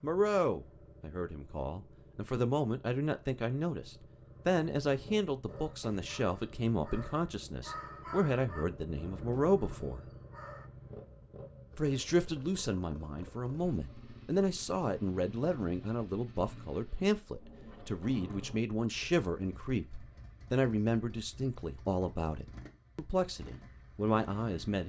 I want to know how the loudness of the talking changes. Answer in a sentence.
The volume of the talking stays about the same.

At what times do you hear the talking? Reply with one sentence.
The talking can be heard from 0.0 to 10.1 s and from 11.8 to 24.8 s.